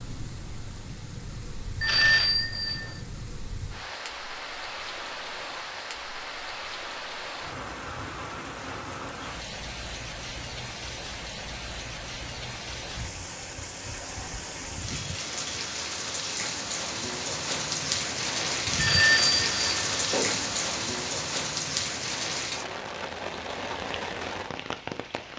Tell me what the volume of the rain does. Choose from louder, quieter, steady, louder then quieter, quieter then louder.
louder.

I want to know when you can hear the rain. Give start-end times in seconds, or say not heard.
0.0-25.3.